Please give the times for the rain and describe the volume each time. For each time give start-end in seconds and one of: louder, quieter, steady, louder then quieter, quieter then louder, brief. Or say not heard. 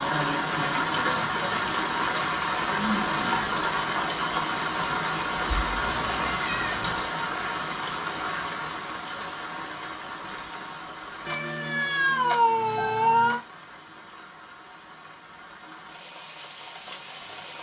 0.0-17.5 quieter.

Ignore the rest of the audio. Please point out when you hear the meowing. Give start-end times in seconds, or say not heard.
5.6-7.1, 11.2-13.4.